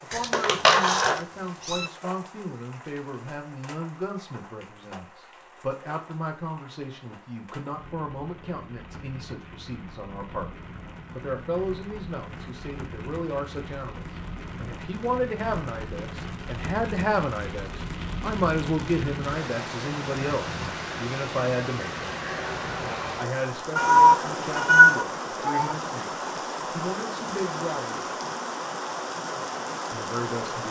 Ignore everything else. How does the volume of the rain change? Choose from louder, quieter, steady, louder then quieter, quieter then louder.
louder.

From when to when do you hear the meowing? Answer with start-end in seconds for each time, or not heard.
0.1-1.9, 23.8-25.8.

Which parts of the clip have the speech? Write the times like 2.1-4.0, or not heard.
0.0-10.5, 11.1-22.2, 23.1-28.1, 29.9-30.6.